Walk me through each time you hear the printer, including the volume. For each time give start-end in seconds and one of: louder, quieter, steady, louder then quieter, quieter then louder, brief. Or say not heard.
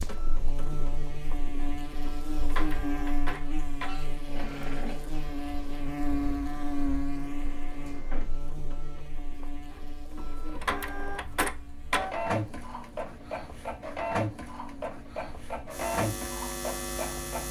0.0-17.4 quieter then louder.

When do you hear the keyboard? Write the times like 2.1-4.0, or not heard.
not heard.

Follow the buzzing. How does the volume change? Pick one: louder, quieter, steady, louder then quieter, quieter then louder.
quieter then louder.